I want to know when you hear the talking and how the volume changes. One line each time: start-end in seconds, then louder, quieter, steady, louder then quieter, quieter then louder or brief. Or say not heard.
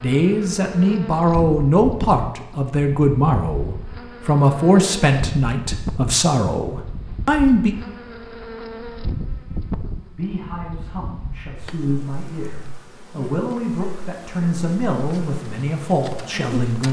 0.0-7.8 steady
10.1-16.8 louder.